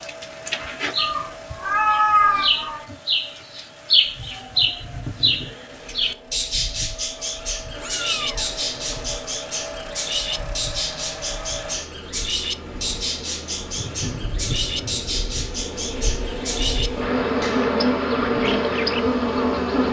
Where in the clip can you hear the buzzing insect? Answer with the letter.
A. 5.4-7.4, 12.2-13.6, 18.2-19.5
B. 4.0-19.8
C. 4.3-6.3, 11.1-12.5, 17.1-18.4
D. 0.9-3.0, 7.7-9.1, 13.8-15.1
B.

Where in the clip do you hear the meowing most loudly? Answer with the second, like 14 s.
2 s.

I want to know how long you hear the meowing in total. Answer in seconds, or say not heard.
5 s.